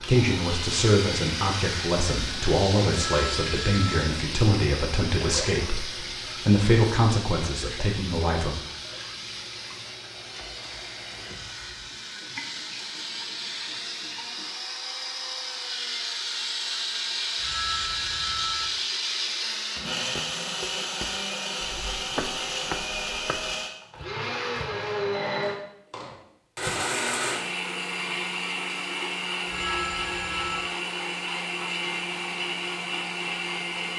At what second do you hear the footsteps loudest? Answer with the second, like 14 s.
22 s.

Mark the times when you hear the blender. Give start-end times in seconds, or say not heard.
0.0-33.9.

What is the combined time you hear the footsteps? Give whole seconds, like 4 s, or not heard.
5 s.